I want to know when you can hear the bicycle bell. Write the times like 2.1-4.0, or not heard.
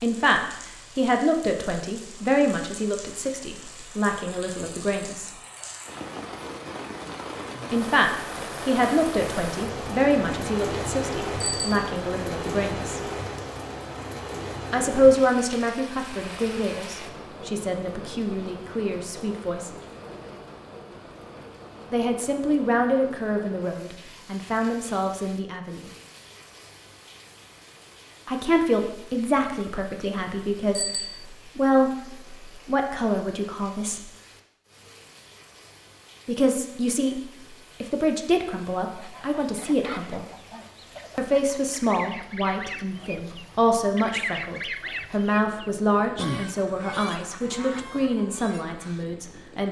11.4-11.9, 30.8-31.2.